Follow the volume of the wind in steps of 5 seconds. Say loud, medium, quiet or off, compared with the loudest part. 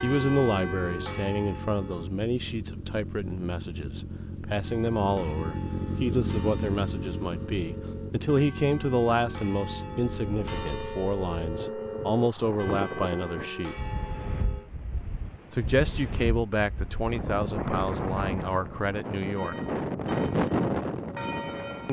off, off, medium, medium, loud.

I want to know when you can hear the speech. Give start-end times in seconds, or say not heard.
0.0-13.8, 15.5-19.6.